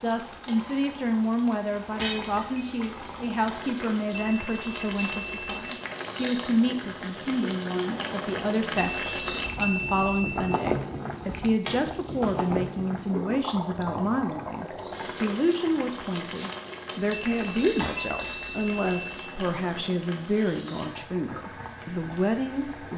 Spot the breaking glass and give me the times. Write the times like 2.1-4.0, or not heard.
1.9-2.6, 11.7-12.3, 17.8-18.6.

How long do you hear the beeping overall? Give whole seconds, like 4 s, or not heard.
5 s.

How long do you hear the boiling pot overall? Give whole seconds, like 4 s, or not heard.
23 s.